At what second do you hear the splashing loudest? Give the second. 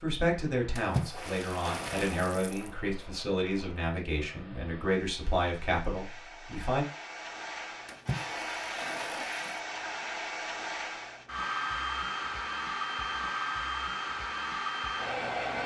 1 s.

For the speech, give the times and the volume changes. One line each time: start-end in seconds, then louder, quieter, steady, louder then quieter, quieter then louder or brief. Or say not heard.
0.0-6.8 steady.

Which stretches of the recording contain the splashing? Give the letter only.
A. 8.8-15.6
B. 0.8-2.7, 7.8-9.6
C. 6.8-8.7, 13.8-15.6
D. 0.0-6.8
B.